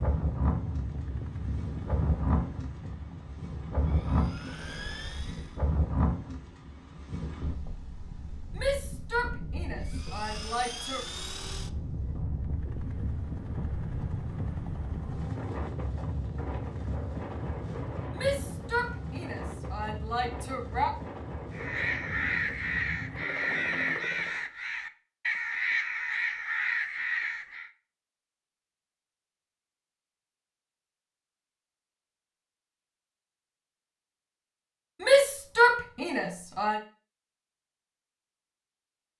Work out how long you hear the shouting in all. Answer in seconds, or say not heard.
7 s.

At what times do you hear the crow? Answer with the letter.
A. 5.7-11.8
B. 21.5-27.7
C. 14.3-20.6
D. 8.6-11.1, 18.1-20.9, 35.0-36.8
B.